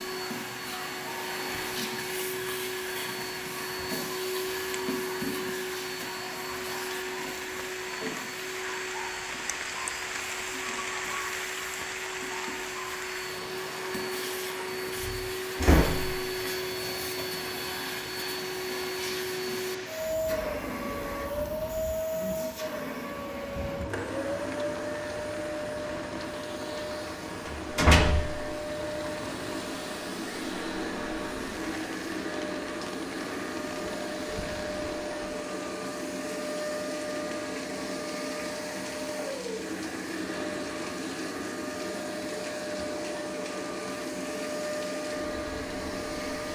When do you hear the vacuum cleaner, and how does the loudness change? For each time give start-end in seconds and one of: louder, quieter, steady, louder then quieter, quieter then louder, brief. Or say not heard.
0.0-46.5 steady.